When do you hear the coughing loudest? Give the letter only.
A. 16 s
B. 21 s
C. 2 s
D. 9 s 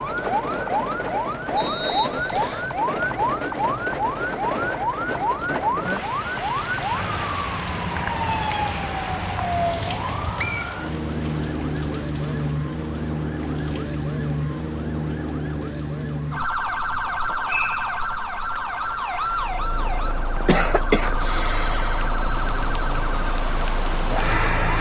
B.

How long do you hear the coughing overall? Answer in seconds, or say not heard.
2 s.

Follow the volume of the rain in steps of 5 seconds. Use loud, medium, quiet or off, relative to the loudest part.
loud, loud, quiet, quiet, loud.